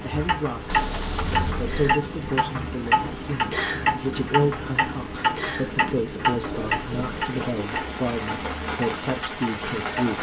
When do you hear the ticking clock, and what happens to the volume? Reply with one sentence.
The ticking clock can be heard from 0.0 to 10.1 s, getting quieter.